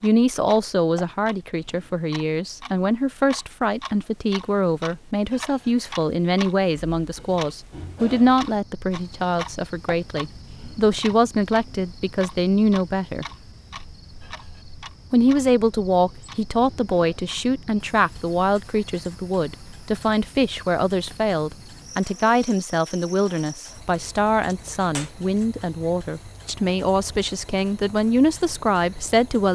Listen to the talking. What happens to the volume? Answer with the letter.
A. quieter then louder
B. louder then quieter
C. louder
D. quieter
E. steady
E.